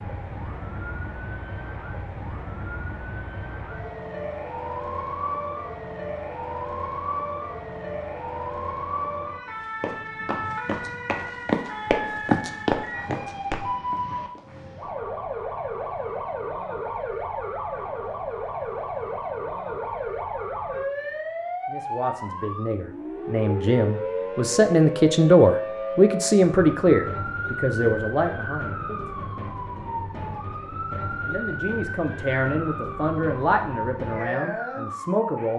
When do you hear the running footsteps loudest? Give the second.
12 s.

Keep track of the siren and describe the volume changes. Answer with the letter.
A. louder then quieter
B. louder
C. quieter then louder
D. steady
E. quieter
D.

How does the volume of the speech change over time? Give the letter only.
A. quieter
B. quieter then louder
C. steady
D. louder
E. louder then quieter
E.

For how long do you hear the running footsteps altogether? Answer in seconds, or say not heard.
5 s.